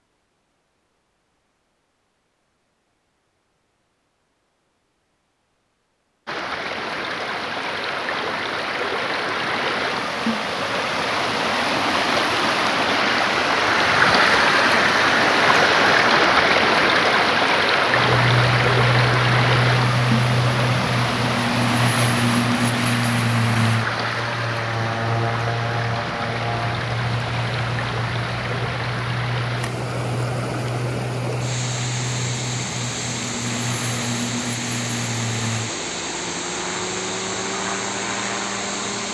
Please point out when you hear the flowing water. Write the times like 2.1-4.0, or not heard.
6.2-39.0.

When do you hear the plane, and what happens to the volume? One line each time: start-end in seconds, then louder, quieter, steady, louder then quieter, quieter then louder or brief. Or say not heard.
17.9-39.0 quieter.